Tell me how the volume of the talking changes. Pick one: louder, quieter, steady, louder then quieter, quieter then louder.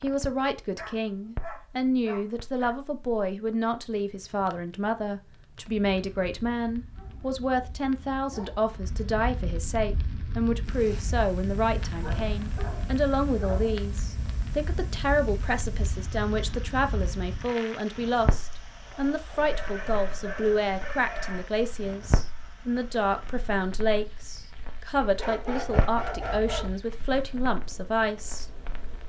steady.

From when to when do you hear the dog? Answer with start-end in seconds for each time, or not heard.
0.8-2.8, 7.0-8.6, 12.0-13.8, 19.4-21.4, 25.0-26.8.